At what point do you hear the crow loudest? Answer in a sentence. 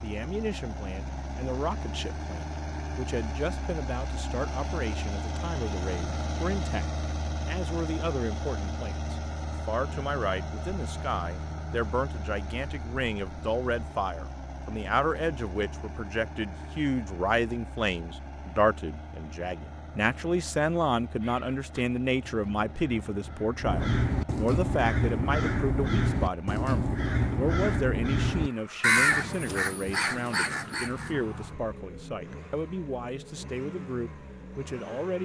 The loudest moment of the crow is at 29 seconds.